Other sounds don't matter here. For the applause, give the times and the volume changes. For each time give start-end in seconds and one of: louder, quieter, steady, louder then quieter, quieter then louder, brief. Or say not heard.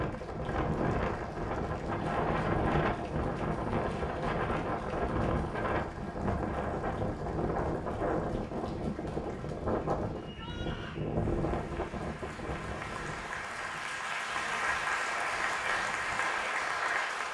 0.0-17.2 louder.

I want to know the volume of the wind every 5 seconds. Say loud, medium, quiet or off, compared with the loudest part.
loud, loud, medium, quiet.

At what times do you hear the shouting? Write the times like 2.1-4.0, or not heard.
10.2-11.0.